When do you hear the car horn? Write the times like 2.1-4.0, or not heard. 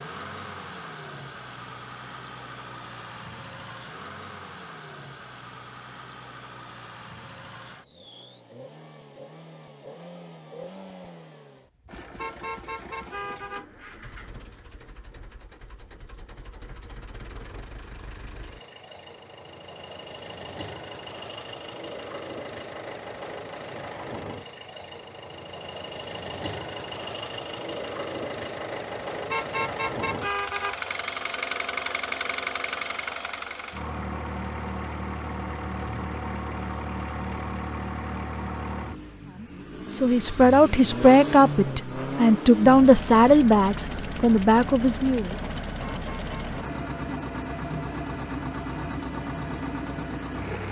12.2-13.7, 29.3-30.8, 45.8-46.4.